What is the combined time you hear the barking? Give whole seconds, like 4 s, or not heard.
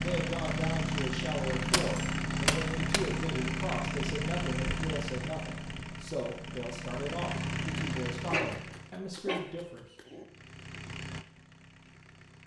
2 s.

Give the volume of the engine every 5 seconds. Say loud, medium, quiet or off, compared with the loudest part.
loud, medium, quiet.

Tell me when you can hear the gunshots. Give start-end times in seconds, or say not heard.
1.7-3.0.